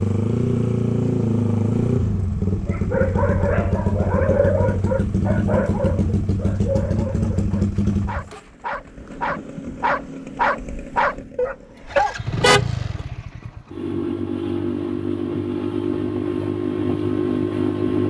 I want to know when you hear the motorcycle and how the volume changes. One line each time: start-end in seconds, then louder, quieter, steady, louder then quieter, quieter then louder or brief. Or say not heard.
0.0-18.0 quieter then louder.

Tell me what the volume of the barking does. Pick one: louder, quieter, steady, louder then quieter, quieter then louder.
quieter then louder.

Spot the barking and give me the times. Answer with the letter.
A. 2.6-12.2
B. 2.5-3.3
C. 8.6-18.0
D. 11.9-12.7
A.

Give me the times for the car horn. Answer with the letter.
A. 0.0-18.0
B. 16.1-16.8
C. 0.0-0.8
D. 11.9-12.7
D.